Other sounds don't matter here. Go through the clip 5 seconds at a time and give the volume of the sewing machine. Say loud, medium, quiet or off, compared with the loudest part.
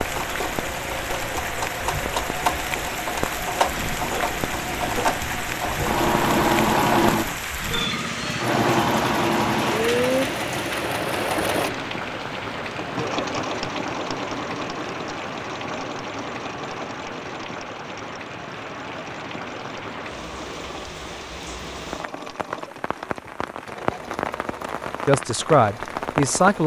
medium, loud, medium, quiet, quiet, quiet.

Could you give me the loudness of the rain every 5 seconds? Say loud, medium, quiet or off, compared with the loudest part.
loud, loud, loud, medium, medium, loud.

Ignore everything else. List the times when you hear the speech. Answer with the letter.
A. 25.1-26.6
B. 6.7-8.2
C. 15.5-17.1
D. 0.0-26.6
A.